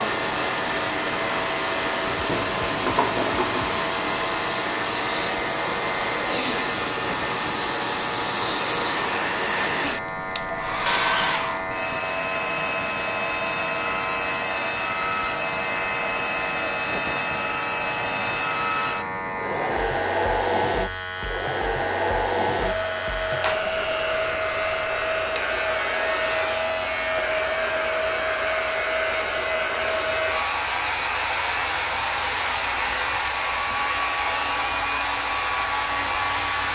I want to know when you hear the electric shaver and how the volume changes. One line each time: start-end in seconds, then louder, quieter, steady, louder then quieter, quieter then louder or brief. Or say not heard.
0.0-36.7 steady.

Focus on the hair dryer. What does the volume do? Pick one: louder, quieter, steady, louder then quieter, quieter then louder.
steady.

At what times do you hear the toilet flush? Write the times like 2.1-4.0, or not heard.
2.1-3.8.